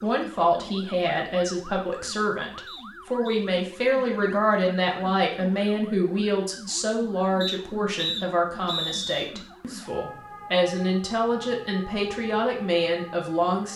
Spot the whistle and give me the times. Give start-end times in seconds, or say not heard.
2.6-3.5, 7.4-9.3.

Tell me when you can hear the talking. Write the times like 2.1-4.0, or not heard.
0.0-13.7.